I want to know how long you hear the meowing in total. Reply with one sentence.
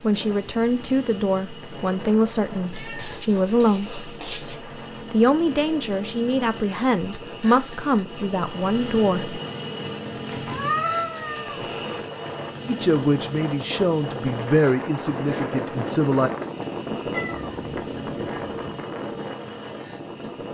You can hear the meowing for 5 seconds altogether.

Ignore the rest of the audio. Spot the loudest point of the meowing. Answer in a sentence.
The loudest moment of the meowing is at 11 seconds.